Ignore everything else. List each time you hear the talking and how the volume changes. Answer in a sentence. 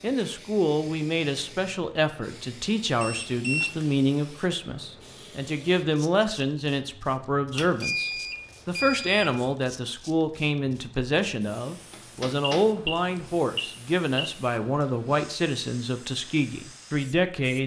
You can hear the talking from 0.0 to 17.6 s, at a steady volume.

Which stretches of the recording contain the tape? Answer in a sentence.
You can't hear the tape here.